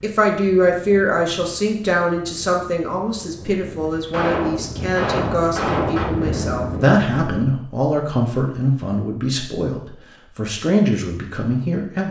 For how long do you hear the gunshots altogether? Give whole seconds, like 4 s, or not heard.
2 s.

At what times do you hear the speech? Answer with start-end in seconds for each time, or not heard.
0.0-12.0.